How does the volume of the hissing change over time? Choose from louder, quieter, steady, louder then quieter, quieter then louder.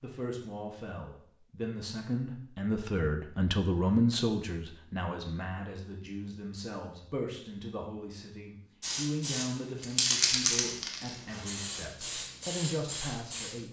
louder then quieter.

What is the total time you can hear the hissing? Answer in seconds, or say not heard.
5 s.